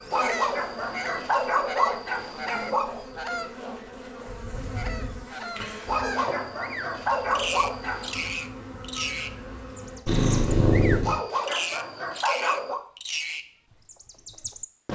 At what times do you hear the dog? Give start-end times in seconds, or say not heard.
0.1-3.0, 5.8-8.3, 11.0-12.8.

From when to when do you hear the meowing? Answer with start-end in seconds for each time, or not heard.
10.1-11.2.